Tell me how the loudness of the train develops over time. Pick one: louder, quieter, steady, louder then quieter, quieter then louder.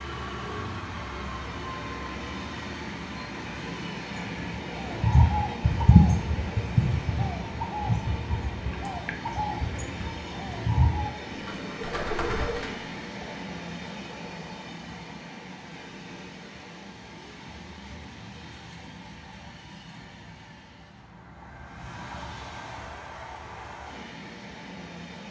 quieter.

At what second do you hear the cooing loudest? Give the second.
6 s.